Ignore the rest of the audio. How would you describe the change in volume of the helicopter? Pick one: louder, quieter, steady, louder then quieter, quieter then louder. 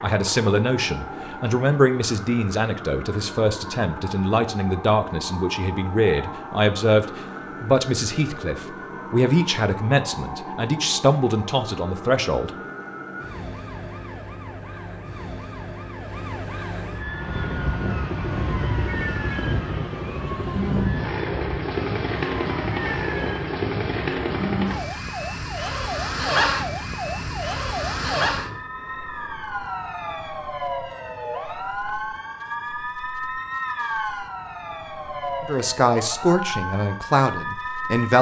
steady.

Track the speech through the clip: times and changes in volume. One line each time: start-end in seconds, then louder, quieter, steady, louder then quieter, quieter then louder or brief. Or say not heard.
0.0-12.6 steady
35.5-38.1 brief.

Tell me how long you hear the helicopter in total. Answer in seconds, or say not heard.
12 s.